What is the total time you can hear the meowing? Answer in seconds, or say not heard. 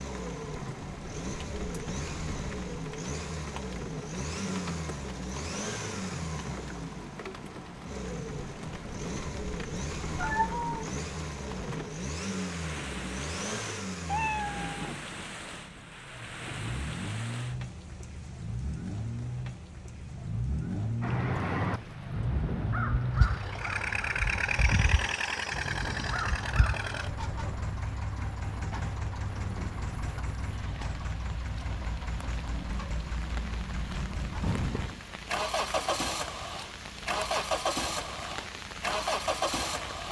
2 s.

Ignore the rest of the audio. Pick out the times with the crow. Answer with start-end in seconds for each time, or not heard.
21.0-27.0.